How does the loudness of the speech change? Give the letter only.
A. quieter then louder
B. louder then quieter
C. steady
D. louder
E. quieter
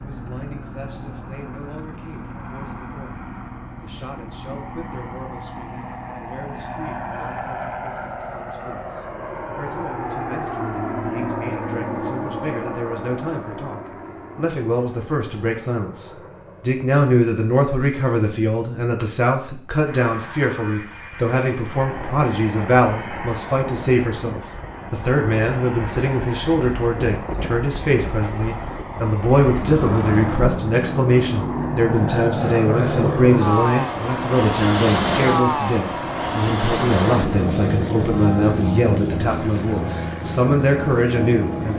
D.